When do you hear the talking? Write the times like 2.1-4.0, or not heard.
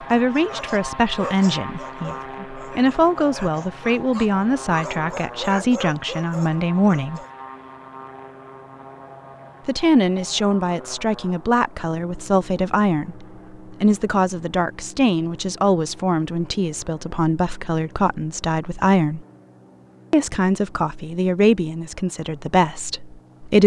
0.1-7.2, 9.7-19.2, 20.1-23.6.